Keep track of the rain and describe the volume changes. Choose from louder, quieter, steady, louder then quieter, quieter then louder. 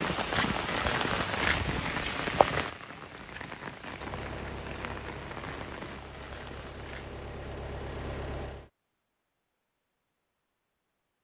quieter.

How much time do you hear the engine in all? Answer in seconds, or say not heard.
5 s.